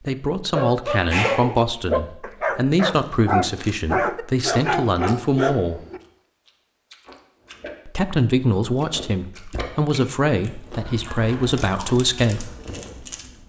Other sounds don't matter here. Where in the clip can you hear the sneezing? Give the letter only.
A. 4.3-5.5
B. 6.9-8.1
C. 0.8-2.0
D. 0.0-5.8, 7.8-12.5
C.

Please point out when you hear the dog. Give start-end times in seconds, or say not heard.
0.5-6.0.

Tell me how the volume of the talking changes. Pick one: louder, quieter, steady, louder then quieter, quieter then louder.
steady.